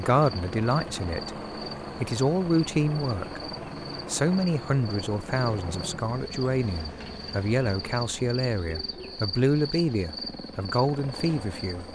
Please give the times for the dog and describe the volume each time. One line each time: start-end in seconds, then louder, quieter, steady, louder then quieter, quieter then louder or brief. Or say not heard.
not heard.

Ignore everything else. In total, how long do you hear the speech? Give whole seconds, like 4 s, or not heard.
11 s.